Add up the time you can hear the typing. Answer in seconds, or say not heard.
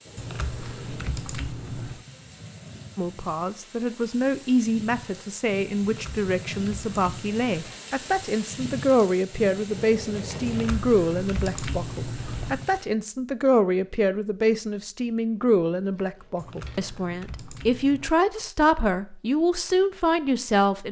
8 s.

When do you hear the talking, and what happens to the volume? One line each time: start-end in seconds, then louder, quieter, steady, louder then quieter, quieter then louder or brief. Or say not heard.
3.0-20.8 steady.